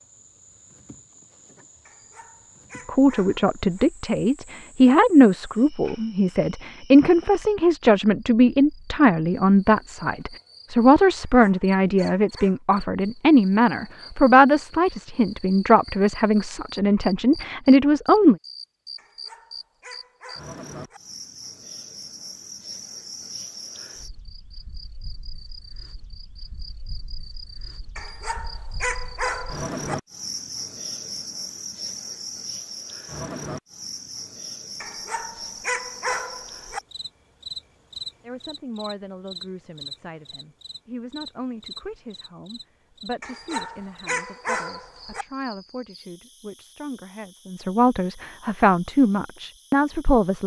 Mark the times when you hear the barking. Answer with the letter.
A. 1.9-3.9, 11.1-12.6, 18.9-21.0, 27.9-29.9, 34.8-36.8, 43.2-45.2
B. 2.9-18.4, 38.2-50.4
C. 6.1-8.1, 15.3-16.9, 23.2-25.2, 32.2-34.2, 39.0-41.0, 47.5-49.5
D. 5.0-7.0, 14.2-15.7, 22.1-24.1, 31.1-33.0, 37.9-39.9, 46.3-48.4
A.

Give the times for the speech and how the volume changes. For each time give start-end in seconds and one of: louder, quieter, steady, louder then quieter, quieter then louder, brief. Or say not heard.
2.9-18.4 steady
38.2-50.4 louder.